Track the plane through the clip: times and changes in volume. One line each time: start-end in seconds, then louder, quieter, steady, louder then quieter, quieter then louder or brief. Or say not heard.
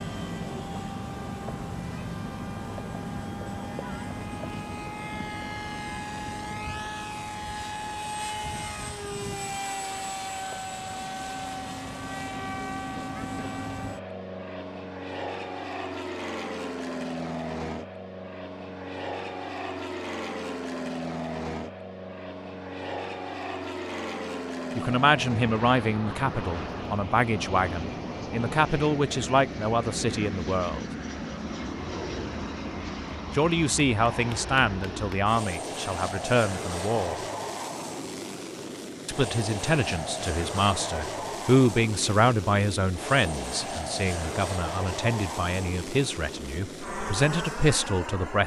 0.0-48.4 steady.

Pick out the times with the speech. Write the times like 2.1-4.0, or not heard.
24.8-30.9, 33.3-37.2, 39.0-48.4.